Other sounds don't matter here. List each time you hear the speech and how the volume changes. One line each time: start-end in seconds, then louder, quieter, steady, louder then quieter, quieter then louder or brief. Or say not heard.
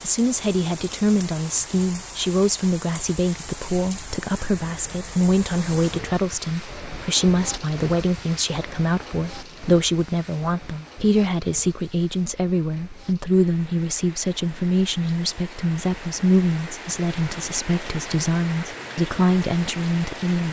0.0-20.4 steady.